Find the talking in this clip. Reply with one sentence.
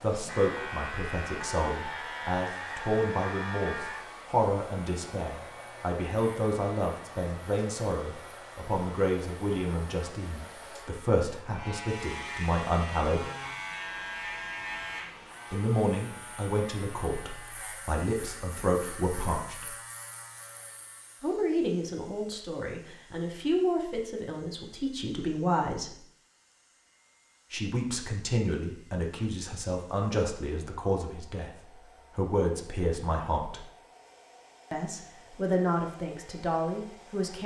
You can hear the talking from 0.0 to 13.2 s, from 15.5 to 19.7 s, from 21.2 to 25.9 s, from 27.5 to 33.6 s and from 34.7 to 37.4 s.